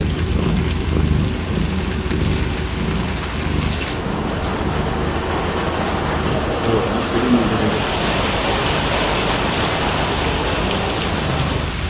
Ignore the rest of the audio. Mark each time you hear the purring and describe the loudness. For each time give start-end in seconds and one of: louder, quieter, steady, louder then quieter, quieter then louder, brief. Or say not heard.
0.0-11.8 quieter.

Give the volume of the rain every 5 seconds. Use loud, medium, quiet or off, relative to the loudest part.
medium, loud, loud.